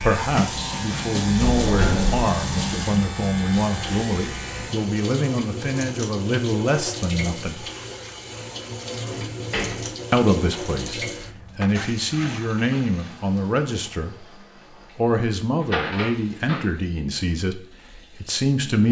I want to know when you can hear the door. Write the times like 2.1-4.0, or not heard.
1.4-2.3, 9.3-10.1, 15.6-16.6.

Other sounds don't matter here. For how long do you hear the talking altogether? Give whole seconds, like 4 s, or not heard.
15 s.